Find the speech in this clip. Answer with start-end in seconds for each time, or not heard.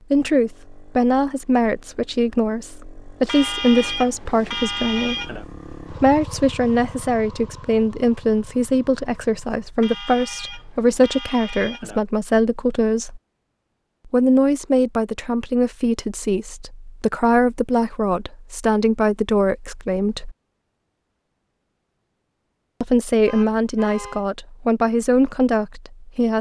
0.1-13.2, 14.1-20.4, 22.8-26.3.